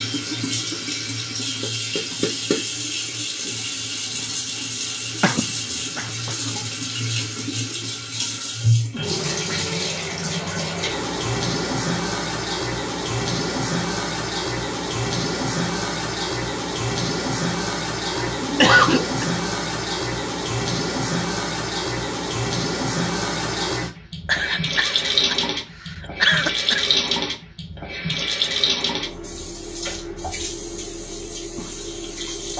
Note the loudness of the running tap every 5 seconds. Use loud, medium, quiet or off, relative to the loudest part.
loud, loud, loud, loud, loud, loud, medium.